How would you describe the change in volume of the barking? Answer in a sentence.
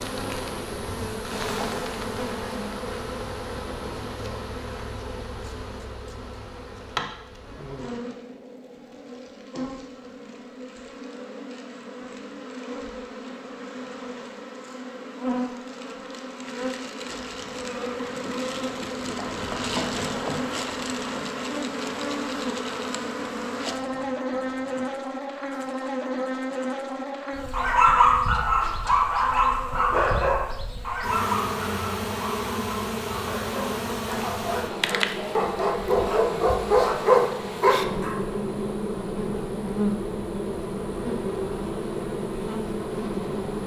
The volume of the barking goes down, then up.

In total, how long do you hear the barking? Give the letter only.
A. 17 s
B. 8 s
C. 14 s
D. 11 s
D.